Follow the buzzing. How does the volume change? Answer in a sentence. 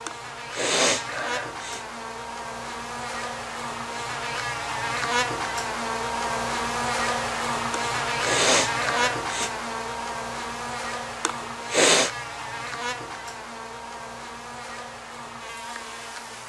The volume of the buzzing goes up, then down.